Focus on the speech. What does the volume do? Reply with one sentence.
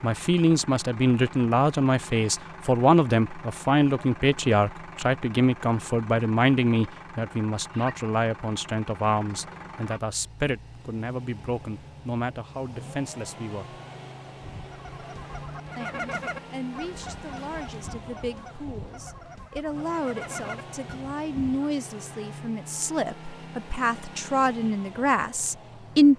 The volume of the speech goes down, then up.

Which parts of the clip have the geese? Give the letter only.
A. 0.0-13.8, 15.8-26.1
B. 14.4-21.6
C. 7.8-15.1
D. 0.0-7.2
B.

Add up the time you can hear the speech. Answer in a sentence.
The speech can be heard for 24 seconds in total.